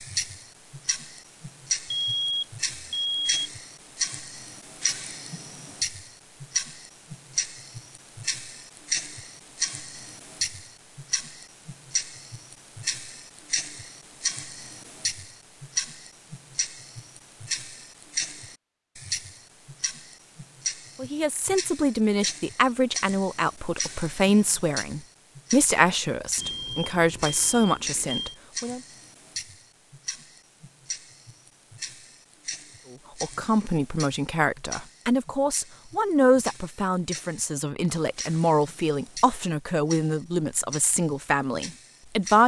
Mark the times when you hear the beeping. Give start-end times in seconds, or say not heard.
1.9-3.3, 26.4-28.4.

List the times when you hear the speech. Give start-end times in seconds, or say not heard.
20.9-28.8, 32.9-42.4.